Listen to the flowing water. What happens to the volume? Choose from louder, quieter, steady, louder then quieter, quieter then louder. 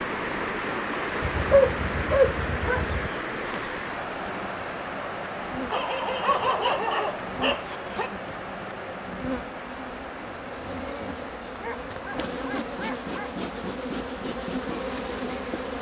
quieter.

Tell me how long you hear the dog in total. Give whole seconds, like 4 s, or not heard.
6 s.